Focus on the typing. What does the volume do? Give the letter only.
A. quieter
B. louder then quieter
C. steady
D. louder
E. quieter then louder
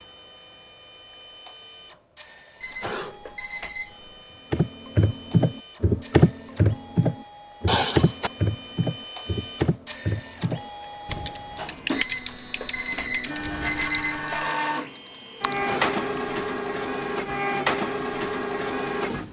A.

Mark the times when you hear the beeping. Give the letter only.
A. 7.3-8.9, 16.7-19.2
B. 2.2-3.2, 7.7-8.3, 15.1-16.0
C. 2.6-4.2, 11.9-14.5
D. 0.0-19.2
C.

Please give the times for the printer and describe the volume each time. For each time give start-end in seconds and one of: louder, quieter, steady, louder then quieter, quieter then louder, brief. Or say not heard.
0.0-19.2 louder.